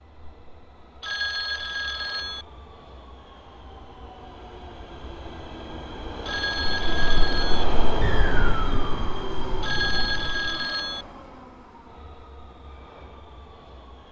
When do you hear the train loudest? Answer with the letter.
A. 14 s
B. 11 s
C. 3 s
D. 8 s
D.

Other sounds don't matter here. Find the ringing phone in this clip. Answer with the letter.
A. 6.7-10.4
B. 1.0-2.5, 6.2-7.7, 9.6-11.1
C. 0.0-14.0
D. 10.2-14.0
B.